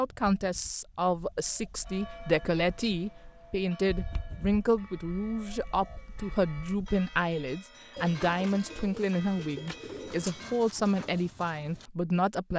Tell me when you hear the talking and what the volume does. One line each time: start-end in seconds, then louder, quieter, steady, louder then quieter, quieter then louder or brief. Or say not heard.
0.0-12.5 steady.